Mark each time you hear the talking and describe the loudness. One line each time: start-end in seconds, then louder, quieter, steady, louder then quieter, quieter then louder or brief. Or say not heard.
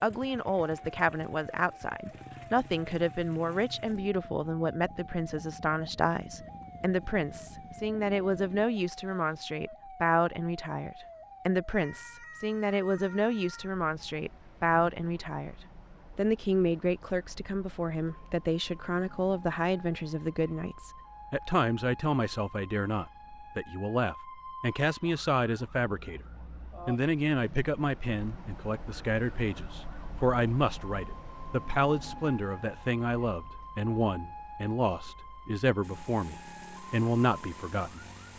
0.0-26.2 steady
26.9-38.0 steady.